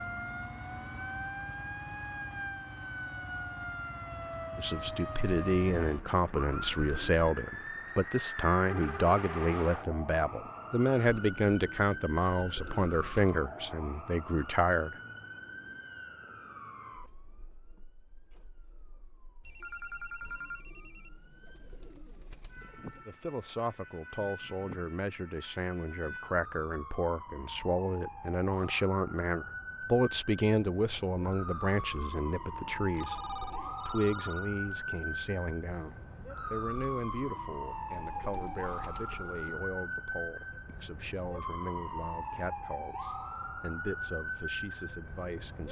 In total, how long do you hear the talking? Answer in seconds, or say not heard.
33 s.